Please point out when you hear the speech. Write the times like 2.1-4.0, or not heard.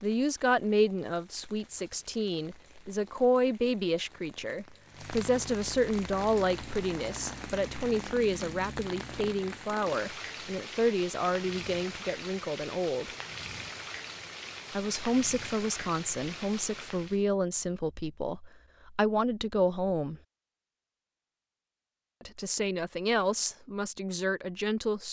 0.0-13.1, 14.7-20.2, 22.2-25.0.